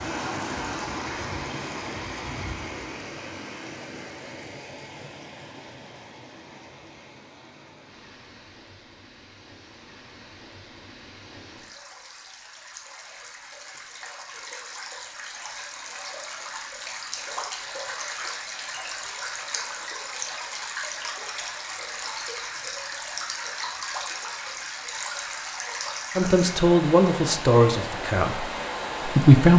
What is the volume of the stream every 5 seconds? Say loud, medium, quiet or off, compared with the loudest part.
loud, quiet, medium, loud, loud, loud.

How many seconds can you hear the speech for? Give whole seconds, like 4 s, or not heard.
3 s.